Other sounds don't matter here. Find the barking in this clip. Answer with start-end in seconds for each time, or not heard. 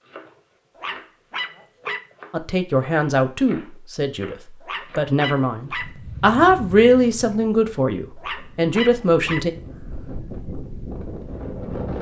0.8-2.1, 4.6-6.0, 8.2-9.9.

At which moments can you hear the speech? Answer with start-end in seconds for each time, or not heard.
2.3-4.3, 5.0-9.5.